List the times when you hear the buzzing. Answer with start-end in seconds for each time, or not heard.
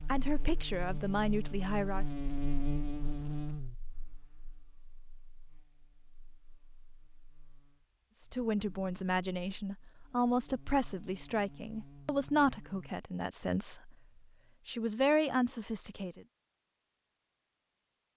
0.0-12.9.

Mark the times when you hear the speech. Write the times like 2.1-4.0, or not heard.
0.1-2.0, 8.2-13.9, 14.7-16.2.